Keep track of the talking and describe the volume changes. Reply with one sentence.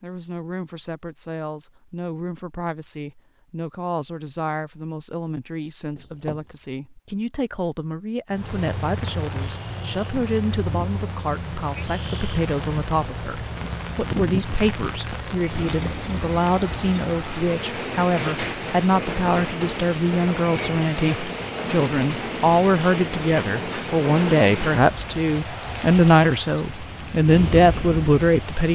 The loudness of the talking goes up.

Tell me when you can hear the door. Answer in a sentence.
You can hear the door from 6.0 to 6.5 s.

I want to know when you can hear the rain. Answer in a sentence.
You can hear the rain from 8.3 to 28.7 s.